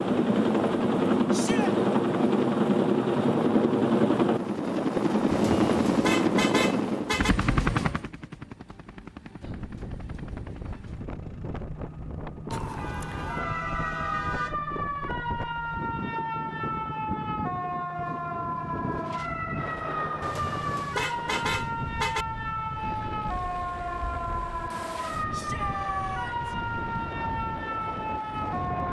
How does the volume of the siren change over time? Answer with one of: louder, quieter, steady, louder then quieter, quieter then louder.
steady.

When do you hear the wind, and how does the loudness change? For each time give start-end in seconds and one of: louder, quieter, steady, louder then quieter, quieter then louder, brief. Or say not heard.
9.4-28.8 steady.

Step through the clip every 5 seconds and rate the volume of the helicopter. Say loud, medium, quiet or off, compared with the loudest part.
loud, loud, quiet, quiet, quiet, quiet.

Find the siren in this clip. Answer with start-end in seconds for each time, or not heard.
12.5-28.8.